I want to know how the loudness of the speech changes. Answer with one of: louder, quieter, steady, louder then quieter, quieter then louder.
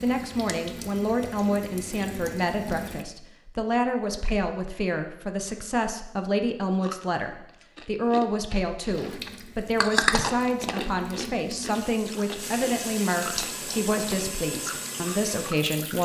steady.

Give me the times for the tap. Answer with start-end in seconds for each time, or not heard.
0.0-3.0, 8.9-16.0.